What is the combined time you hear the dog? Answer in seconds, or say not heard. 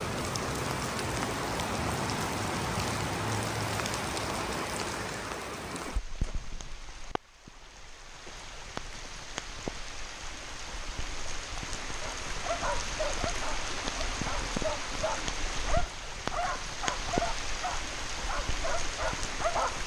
8 s.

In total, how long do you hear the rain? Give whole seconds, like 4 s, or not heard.
20 s.